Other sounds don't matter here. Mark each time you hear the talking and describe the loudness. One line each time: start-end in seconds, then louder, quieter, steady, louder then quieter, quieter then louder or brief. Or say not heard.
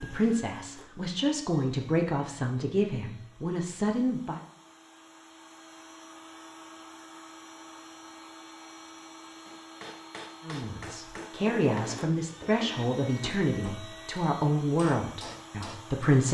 0.0-4.4 louder
10.4-16.2 steady.